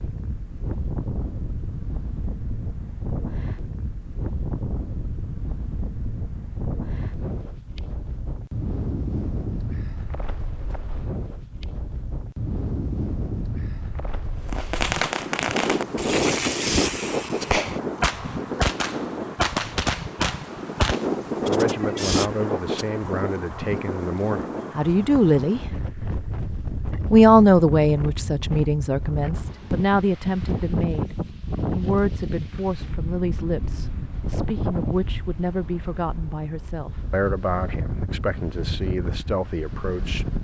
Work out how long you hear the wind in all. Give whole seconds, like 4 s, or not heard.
40 s.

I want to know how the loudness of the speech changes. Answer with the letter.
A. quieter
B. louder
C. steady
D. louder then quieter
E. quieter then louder
D.